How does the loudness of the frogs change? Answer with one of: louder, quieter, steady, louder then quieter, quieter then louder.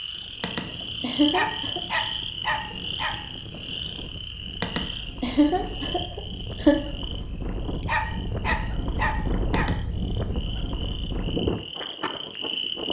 quieter then louder.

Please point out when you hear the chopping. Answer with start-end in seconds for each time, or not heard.
not heard.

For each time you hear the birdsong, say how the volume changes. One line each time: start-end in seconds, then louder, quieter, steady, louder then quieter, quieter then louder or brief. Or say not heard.
not heard.